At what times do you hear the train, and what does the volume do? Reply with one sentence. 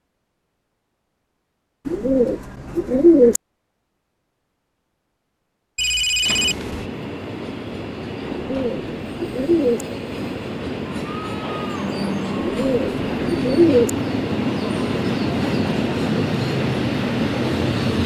The train can be heard from 6.2 to 18.0 s, getting louder.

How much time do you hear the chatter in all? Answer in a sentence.
The chatter can't be heard in this clip.